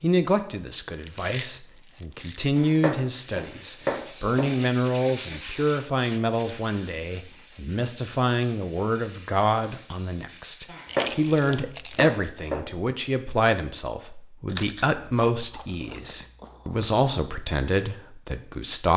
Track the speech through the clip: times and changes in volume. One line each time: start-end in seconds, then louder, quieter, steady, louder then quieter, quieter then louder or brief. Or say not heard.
0.0-18.9 steady.